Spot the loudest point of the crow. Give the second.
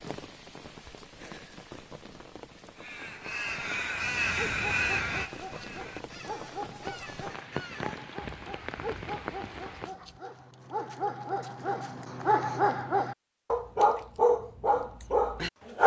5 s.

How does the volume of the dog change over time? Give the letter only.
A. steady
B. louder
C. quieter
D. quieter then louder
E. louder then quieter
B.